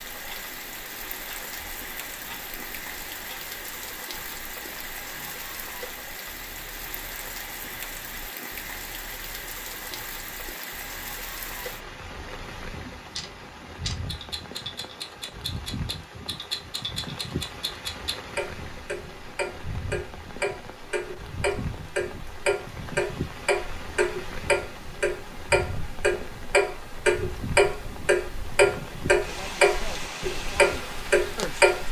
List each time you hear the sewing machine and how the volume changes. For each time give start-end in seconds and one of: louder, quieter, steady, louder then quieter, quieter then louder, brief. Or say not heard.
not heard.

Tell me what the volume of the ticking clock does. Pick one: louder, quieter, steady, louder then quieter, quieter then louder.
louder.